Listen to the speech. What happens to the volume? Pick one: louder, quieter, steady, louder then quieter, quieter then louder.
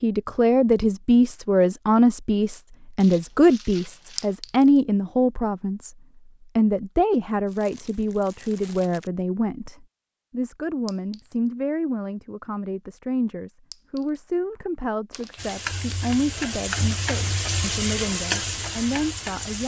quieter.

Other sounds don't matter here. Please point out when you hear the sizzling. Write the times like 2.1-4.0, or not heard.
15.3-19.6.